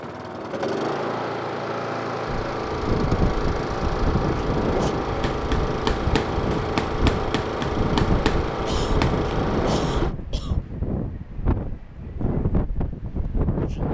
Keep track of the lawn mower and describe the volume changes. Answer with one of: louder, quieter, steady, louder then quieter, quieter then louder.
steady.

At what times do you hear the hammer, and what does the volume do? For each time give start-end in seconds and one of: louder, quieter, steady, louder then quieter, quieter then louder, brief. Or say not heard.
5.2-9.2 steady.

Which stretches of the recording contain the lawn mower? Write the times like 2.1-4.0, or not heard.
0.0-10.2.